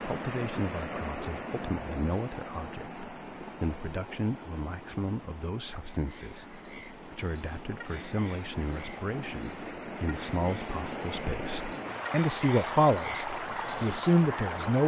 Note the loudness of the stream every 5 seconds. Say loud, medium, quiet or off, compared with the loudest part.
loud, medium, loud.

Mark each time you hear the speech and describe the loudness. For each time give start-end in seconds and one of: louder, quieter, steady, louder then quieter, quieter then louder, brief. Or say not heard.
0.1-14.8 louder.